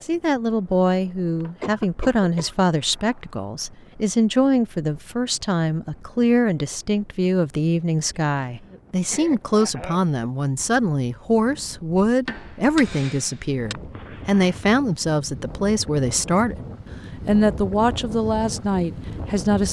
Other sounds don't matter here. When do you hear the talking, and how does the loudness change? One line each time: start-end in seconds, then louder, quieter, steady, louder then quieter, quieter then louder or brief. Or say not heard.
0.0-16.6 steady
17.2-19.6 brief.